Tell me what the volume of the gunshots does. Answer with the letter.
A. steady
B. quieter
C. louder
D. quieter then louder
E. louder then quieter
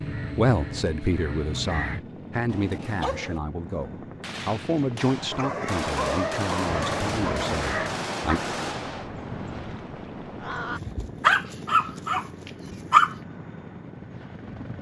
C.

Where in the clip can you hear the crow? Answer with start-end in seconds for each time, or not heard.
0.0-2.0, 6.7-10.8.